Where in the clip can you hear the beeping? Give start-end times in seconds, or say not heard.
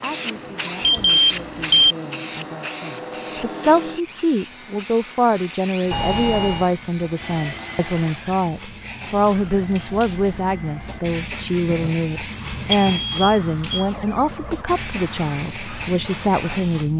0.8-1.9, 5.9-6.7, 12.7-13.8.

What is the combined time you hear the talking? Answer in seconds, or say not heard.
17 s.